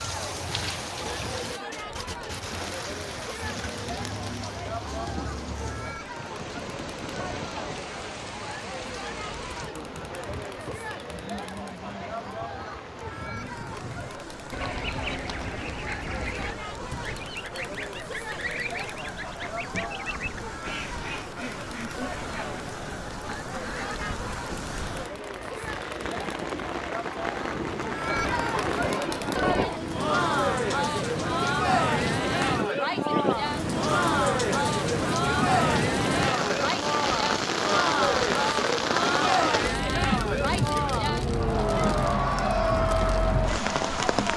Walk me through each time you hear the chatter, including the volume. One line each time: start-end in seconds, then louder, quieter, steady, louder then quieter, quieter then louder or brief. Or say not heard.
0.0-44.3 louder.